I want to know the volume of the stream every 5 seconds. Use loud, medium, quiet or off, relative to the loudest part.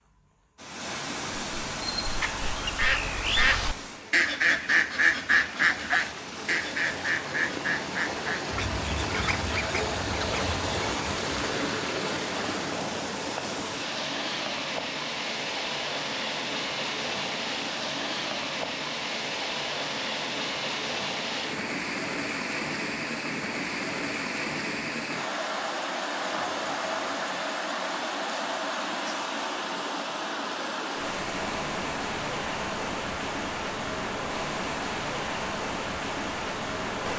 medium, loud, loud, loud, loud, loud, loud, loud.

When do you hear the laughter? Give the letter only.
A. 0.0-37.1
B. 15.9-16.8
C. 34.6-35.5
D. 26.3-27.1
D.